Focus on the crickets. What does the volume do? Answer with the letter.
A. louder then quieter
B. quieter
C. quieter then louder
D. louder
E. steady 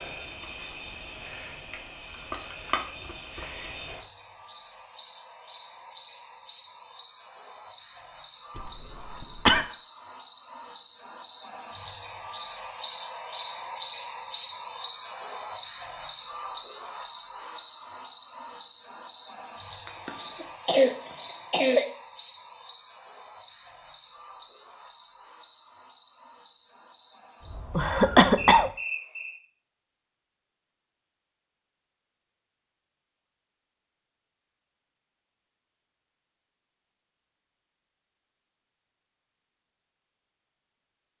A.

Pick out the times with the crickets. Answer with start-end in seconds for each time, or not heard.
0.0-29.4.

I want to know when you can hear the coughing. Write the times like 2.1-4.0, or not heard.
8.6-9.7, 19.9-21.9, 27.8-28.7.